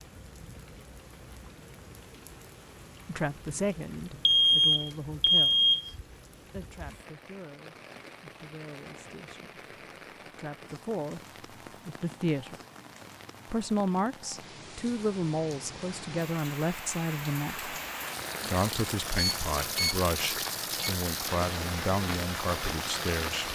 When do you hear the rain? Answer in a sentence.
The rain can be heard from 0.0 to 23.5 s.